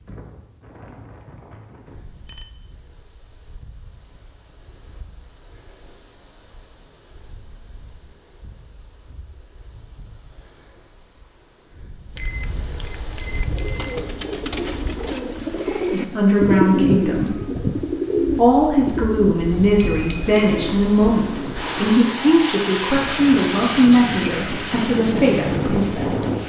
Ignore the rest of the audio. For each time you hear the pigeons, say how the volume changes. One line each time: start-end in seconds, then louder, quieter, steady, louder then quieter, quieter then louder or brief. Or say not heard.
13.2-21.9 louder then quieter.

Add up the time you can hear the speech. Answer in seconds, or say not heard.
9 s.